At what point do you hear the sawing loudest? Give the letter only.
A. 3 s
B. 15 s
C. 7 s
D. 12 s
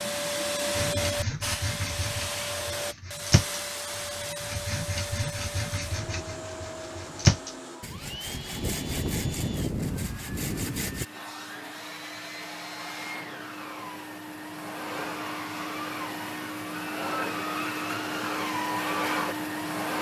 C.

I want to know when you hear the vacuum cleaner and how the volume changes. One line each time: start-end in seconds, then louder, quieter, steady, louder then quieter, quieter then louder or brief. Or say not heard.
0.0-19.9 quieter then louder.